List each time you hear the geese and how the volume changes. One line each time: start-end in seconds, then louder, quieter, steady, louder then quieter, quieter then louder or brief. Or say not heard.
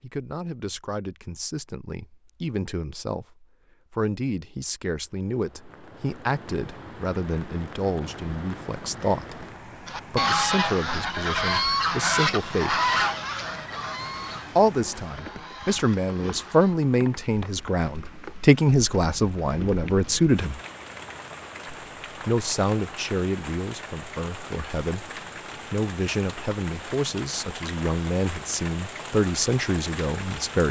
9.8-16.8 quieter.